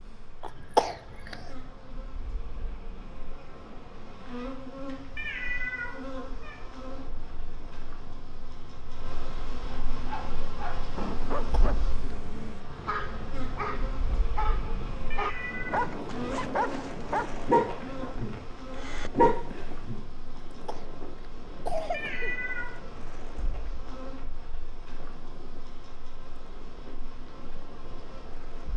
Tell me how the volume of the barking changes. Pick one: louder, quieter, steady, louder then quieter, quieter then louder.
louder.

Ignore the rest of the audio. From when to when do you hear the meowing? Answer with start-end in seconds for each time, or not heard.
5.2-6.5, 15.1-15.9, 21.9-22.8.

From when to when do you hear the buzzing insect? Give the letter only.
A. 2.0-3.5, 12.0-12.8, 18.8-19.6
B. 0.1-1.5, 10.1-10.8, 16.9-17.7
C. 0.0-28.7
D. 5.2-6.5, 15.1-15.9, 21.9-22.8
C.